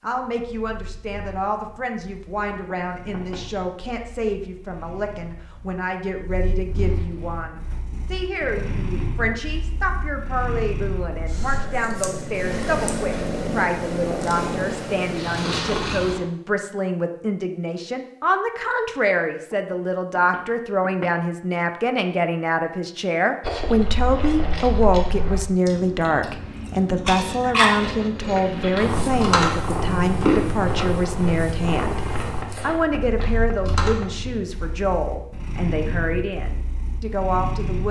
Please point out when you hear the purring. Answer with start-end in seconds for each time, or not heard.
0.1-16.2, 28.4-37.8.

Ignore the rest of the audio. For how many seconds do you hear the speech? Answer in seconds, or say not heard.
38 s.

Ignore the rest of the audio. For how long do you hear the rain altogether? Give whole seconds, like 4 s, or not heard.
not heard.